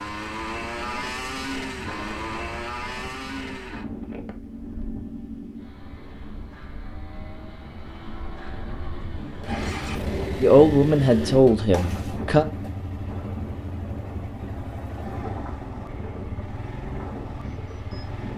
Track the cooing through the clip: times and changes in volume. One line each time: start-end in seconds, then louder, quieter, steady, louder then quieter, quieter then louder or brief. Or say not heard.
not heard.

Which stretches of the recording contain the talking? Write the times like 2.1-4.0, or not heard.
10.4-12.4.